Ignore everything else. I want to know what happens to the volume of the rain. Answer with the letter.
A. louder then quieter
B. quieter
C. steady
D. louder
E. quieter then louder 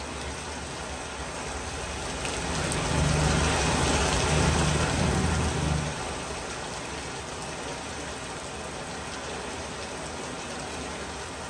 A.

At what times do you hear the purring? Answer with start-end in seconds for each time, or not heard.
2.4-6.0.